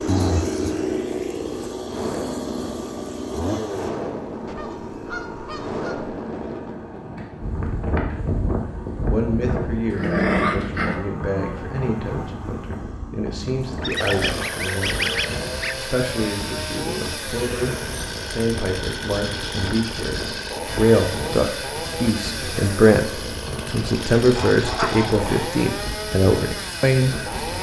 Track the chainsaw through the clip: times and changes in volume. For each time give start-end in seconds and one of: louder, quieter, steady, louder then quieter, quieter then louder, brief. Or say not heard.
0.0-27.5 quieter then louder.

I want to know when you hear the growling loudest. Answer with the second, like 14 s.
10 s.